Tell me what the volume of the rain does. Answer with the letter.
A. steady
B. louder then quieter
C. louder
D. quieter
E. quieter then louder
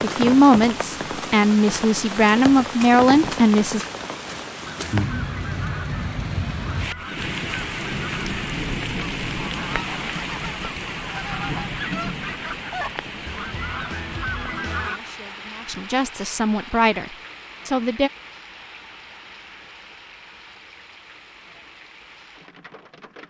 D.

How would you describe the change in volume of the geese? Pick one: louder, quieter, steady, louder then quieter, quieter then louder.
louder.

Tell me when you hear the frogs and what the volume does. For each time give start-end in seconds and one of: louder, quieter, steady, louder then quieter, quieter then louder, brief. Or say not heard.
not heard.